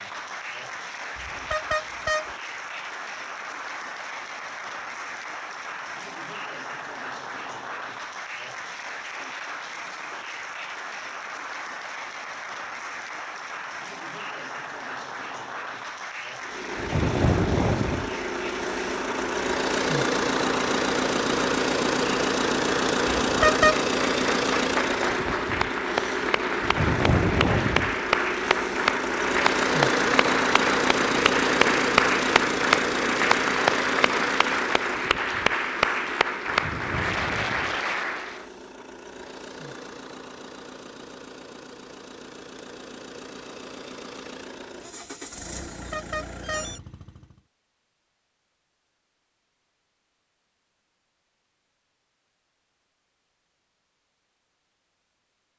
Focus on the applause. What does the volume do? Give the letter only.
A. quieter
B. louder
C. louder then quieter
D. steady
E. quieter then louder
B.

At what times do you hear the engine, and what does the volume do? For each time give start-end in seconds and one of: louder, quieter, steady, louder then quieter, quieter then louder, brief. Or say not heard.
16.4-47.4 quieter.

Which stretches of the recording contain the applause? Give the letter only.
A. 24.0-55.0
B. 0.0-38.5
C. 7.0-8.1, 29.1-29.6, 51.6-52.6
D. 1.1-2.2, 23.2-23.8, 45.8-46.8
B.